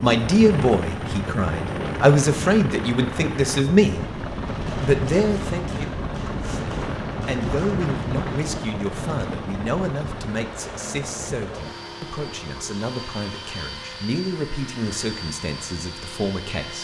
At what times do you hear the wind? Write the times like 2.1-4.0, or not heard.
0.0-10.3.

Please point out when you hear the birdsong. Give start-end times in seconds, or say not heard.
not heard.